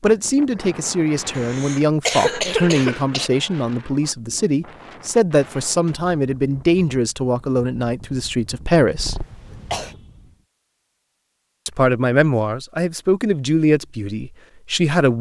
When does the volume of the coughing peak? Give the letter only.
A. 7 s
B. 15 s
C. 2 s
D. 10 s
C.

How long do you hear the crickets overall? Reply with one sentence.
You can't hear the crickets here.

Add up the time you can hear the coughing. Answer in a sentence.
The coughing can be heard for 3 seconds in total.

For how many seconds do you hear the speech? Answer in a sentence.
You can hear the speech for 13 seconds altogether.